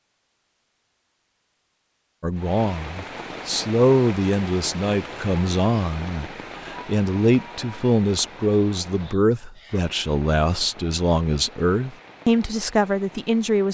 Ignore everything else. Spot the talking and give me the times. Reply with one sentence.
The talking can be heard from 2.2 to 13.6 s.